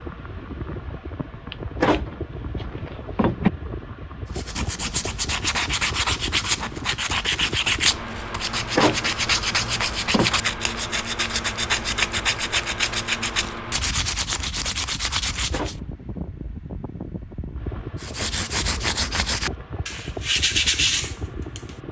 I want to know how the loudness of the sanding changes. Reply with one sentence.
The volume of the sanding stays about the same.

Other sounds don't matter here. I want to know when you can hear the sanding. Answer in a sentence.
The sanding can be heard from 4.3 to 15.8 s and from 17.9 to 21.8 s.